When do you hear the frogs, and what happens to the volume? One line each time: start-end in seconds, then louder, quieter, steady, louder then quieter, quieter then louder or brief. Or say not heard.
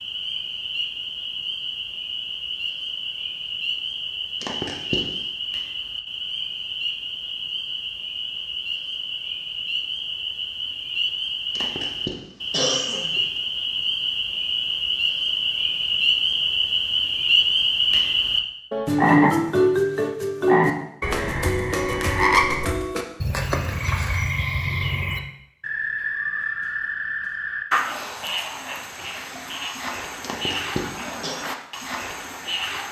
0.0-32.8 louder then quieter.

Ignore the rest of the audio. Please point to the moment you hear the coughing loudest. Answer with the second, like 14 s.
13 s.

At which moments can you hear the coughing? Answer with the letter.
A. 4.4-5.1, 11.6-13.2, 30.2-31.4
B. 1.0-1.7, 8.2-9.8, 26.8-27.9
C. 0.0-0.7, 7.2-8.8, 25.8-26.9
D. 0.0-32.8
A.